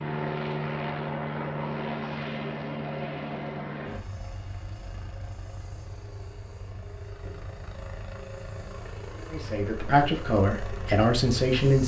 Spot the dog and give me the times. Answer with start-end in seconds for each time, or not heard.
not heard.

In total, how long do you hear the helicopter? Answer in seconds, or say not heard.
12 s.